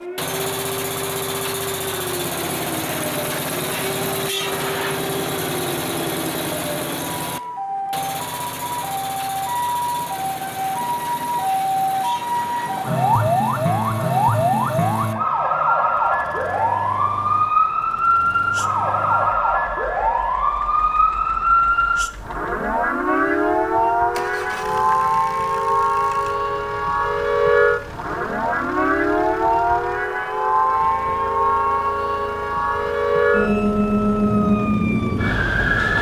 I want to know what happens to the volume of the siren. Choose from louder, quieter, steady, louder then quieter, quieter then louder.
louder.